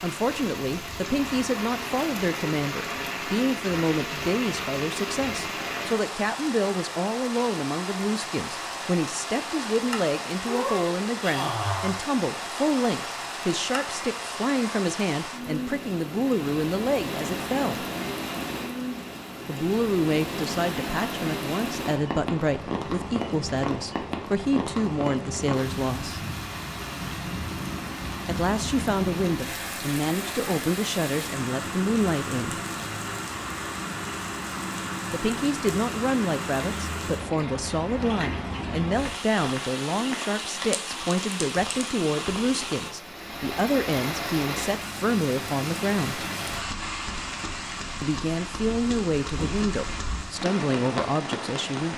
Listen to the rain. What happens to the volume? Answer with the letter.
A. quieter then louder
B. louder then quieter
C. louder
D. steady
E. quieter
D.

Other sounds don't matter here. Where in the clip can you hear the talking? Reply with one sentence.
The talking can be heard from 0.0 to 17.9 s, from 19.4 to 26.2 s, from 28.2 to 32.6 s, from 35.1 to 46.2 s and from 48.0 to 51.9 s.